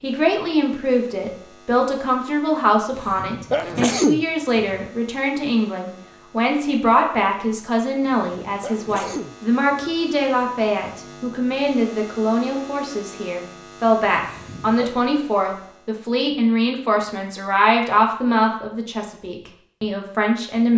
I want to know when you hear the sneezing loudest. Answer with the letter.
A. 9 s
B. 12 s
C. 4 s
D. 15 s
C.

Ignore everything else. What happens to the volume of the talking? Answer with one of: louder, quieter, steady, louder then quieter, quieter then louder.
steady.